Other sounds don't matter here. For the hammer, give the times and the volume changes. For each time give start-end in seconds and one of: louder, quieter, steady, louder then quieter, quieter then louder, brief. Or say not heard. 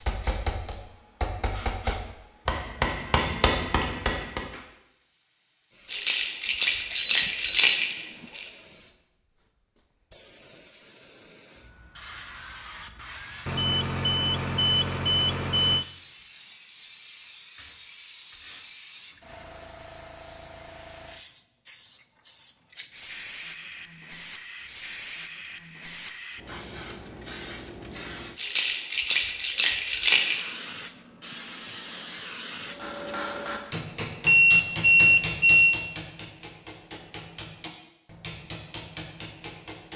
0.0-4.7 louder
32.6-39.9 quieter.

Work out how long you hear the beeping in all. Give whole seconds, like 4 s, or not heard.
5 s.